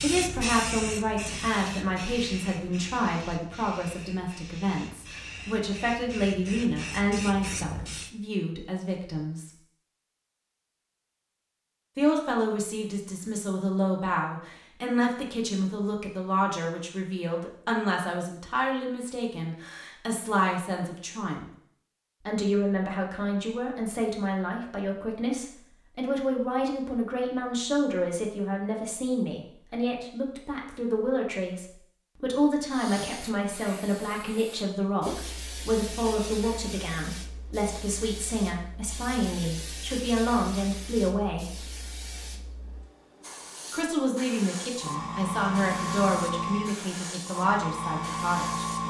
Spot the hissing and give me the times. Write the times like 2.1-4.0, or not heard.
0.0-8.1, 32.7-48.8.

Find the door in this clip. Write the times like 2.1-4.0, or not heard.
not heard.